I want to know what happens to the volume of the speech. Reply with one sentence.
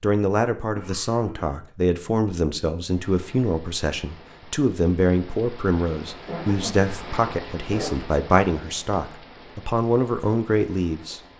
The loudness of the speech stays about the same.